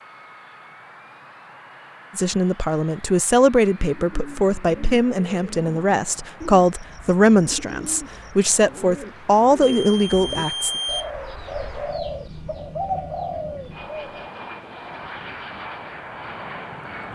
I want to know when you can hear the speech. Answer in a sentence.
You can hear the speech from 2.1 to 10.7 s.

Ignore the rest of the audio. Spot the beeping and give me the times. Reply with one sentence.
You can hear the beeping from 9.6 to 11.1 s.